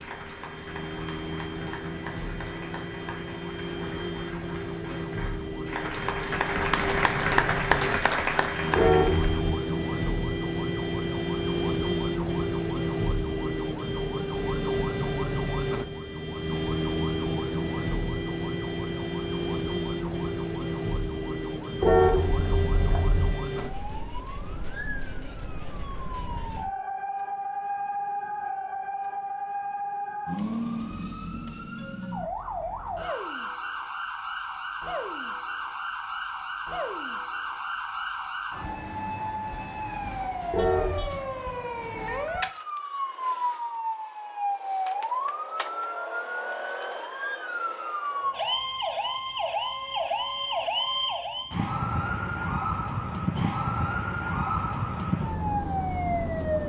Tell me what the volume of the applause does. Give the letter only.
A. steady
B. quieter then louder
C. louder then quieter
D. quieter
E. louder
E.